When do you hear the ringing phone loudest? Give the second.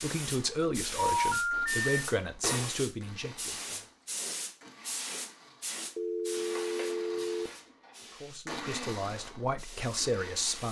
1 s.